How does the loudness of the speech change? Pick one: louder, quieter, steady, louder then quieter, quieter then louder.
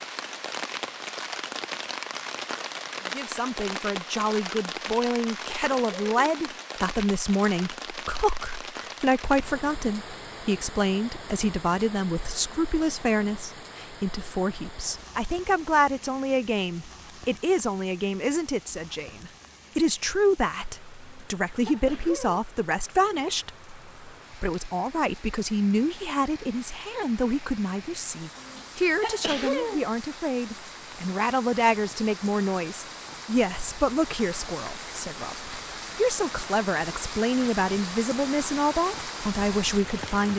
steady.